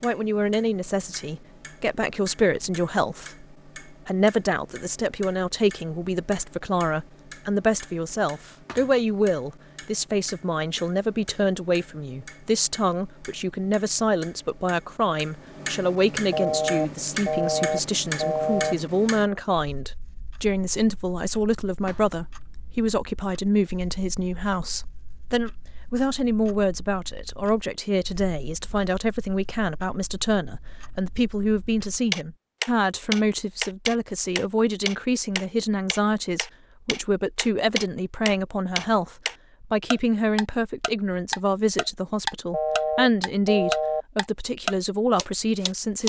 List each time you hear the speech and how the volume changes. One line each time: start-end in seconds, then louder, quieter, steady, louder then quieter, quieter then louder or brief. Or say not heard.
0.0-46.0 steady.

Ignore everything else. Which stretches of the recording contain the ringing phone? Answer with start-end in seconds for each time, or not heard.
16.3-18.8, 42.5-44.0.